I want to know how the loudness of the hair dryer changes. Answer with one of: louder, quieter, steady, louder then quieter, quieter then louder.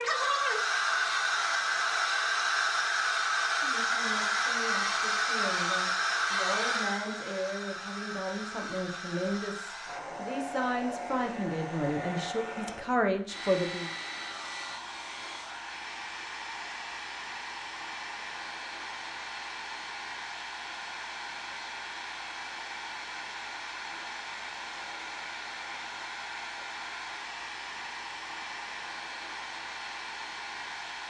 quieter.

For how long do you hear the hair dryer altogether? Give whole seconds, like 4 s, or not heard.
31 s.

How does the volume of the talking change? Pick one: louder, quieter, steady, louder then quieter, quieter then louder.
louder.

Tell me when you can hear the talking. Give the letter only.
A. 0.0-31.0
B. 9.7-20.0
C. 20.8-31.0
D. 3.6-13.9
D.